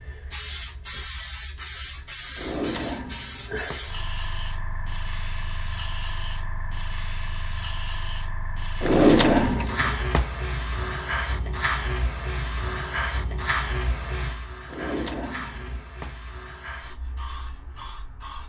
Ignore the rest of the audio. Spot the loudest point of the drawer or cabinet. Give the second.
9 s.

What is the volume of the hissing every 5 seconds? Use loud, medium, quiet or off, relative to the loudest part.
loud, loud, loud, medium.